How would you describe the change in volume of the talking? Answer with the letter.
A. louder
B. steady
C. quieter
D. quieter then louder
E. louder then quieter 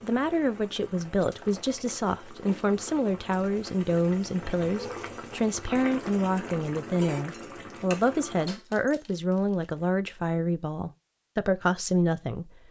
B.